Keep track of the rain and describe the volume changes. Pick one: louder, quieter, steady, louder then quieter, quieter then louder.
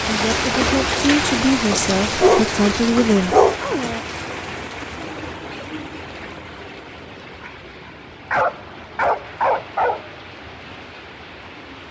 quieter.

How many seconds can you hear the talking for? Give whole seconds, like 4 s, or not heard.
3 s.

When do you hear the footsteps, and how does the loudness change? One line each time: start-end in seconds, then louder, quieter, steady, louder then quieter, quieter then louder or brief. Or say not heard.
not heard.